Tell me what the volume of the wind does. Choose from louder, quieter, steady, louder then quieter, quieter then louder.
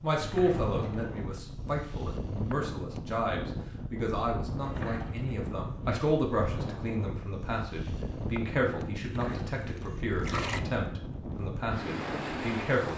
steady.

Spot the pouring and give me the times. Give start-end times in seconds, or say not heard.
0.2-1.2, 4.7-5.3, 9.0-10.6.